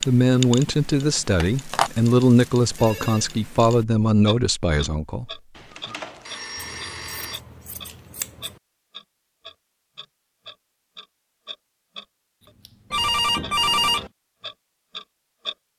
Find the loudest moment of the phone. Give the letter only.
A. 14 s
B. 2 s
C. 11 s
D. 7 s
A.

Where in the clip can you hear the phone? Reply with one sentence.
You can hear the phone from 1.4 to 3.2 s, from 5.5 to 7.4 s and from 12.9 to 14.1 s.